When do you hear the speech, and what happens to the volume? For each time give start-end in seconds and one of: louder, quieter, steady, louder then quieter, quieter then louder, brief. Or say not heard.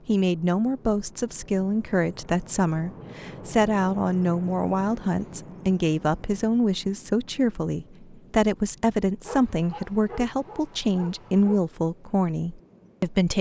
0.1-13.3 steady.